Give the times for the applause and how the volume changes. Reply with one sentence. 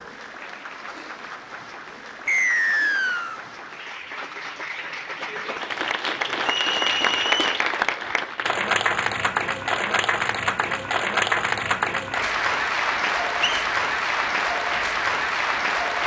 The applause can be heard from 0.0 to 16.0 s, getting louder.